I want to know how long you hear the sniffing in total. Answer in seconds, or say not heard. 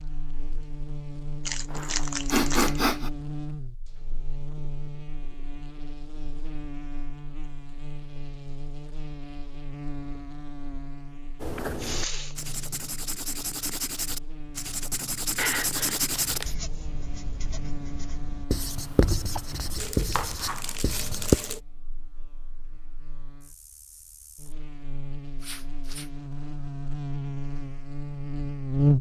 3 s.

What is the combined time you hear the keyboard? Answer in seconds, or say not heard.
not heard.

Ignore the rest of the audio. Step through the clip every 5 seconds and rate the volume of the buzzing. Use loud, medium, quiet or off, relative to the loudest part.
medium, quiet, quiet, quiet, quiet, loud.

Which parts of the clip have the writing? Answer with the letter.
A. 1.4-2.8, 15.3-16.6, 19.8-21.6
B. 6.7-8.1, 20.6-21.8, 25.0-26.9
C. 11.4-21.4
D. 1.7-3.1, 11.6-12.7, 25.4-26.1
C.